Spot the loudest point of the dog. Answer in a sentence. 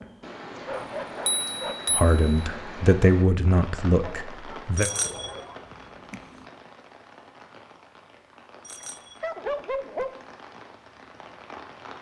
The loudest moment of the dog is at 10 seconds.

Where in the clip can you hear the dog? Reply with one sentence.
The dog can be heard from 0.7 to 1.9 s, from 4.0 to 5.7 s and from 9.2 to 10.1 s.